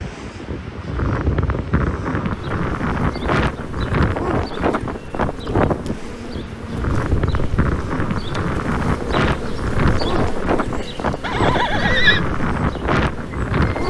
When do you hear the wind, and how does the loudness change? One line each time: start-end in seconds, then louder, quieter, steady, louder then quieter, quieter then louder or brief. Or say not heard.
0.0-13.8 steady.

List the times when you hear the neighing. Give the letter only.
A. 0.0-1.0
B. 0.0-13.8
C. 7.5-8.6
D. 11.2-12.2
D.